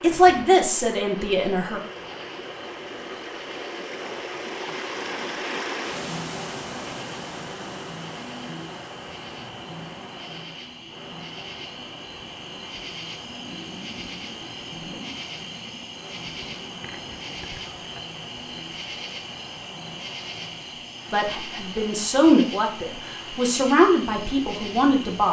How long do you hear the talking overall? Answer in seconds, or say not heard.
6 s.